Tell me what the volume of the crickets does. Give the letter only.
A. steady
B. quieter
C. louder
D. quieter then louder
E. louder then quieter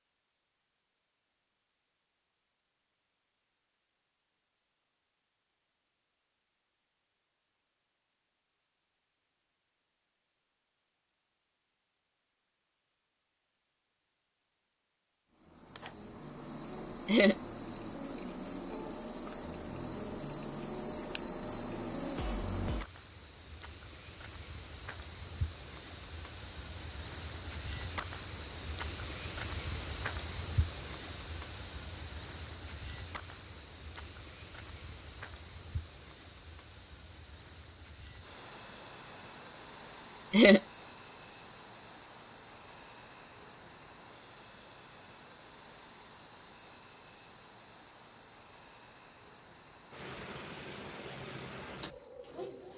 E.